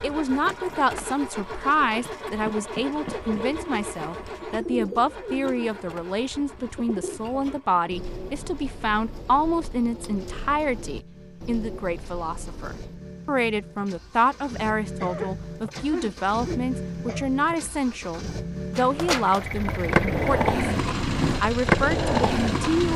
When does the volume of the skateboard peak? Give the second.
22 s.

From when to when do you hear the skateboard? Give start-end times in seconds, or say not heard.
18.8-22.9.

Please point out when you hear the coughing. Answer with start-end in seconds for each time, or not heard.
15.0-17.3.